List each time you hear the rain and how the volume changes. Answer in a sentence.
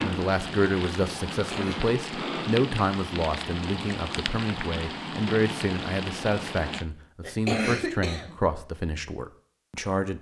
You can hear the rain from 0.0 to 6.8 s, at a steady volume.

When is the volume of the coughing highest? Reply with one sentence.
The loudest moment of the coughing is at 8 seconds.